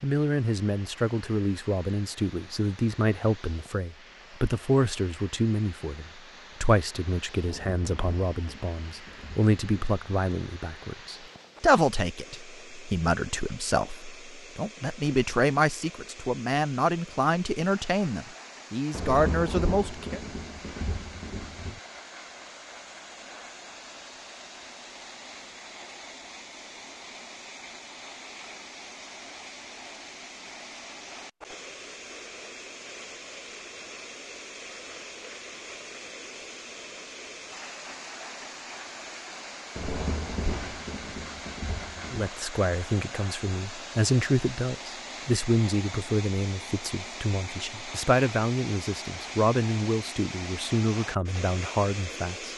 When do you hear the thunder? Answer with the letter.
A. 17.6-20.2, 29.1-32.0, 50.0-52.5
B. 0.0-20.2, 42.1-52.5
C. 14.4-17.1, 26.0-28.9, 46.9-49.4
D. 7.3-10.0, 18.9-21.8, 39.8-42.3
D.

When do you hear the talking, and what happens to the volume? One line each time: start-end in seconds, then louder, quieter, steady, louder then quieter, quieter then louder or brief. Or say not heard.
0.0-20.2 steady
42.1-52.5 steady.